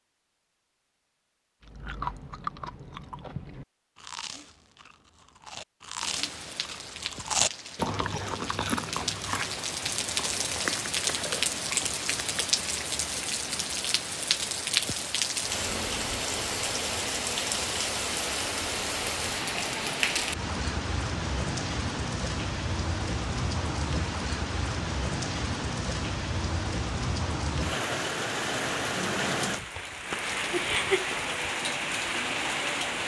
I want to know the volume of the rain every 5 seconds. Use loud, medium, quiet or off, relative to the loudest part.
off, medium, loud, loud, loud, loud, loud.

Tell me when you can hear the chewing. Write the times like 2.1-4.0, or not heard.
1.6-12.5.